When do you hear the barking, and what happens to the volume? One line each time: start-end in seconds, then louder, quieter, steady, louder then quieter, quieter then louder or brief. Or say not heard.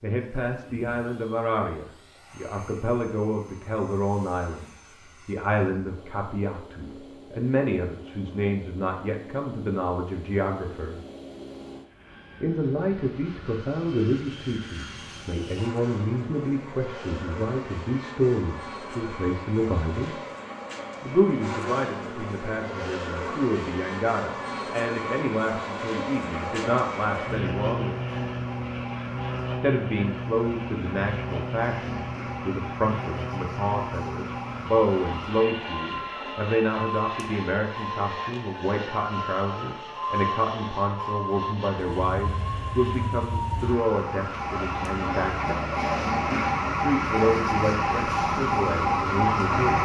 not heard.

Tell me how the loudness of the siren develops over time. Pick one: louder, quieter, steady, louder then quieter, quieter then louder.
louder.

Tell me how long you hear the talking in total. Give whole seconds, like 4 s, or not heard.
45 s.